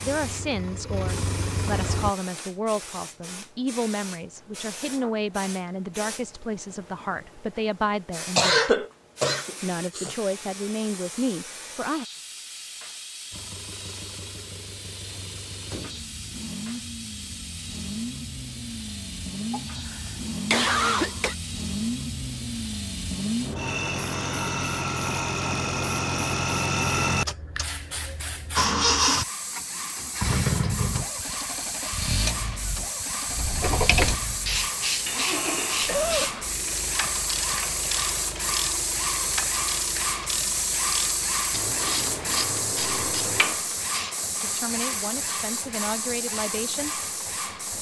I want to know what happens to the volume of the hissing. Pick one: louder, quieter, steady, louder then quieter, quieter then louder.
louder.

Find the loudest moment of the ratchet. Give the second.
34 s.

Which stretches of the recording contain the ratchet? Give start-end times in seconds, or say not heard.
33.2-44.1.